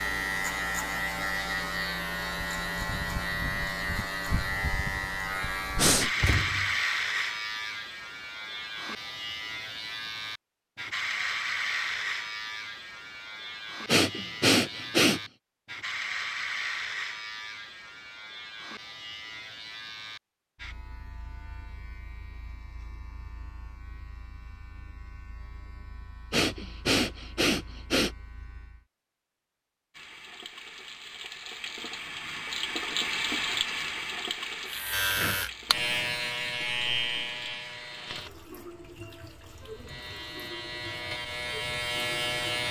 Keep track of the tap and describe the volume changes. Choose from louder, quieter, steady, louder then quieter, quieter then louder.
louder then quieter.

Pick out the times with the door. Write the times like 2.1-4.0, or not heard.
6.2-6.8.